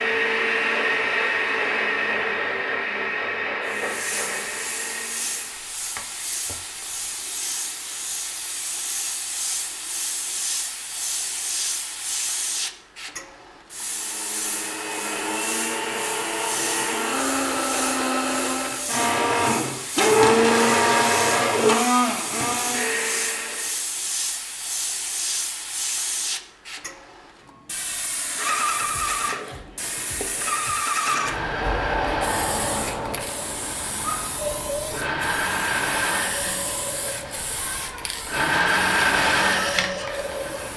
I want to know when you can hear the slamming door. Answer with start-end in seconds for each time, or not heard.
not heard.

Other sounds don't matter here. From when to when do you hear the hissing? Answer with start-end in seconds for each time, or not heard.
3.6-40.7.